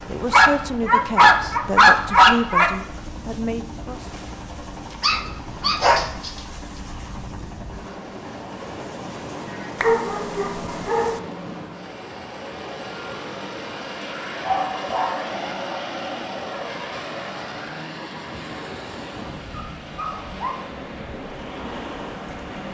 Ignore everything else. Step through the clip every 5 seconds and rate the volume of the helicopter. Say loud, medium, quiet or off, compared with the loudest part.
medium, medium, loud, loud, medium.